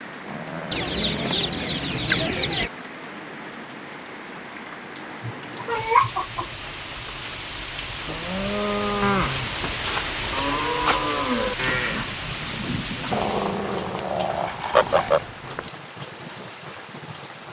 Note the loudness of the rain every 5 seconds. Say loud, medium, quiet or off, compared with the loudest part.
medium, loud, loud, medium.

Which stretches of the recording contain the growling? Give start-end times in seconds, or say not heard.
0.2-2.0, 13.1-15.1.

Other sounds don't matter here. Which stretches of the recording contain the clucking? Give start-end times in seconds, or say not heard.
0.7-2.7, 5.2-7.1, 9.4-11.0, 14.8-15.7.